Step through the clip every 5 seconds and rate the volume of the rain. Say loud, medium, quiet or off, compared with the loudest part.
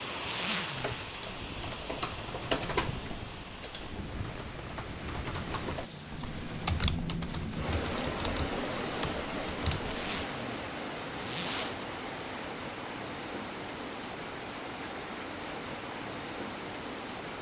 medium, loud, loud, loud.